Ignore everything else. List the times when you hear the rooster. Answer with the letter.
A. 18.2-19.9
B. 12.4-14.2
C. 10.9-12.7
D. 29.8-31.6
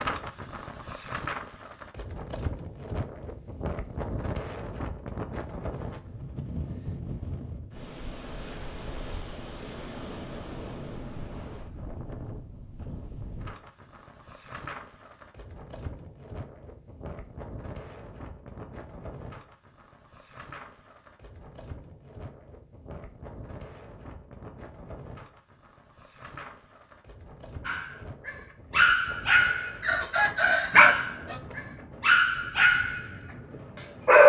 D.